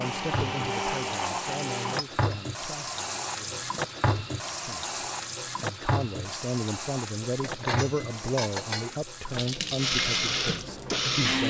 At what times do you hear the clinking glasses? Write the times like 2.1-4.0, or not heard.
1.9-2.4, 7.4-8.9.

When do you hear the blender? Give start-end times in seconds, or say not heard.
0.0-2.0, 9.8-11.4.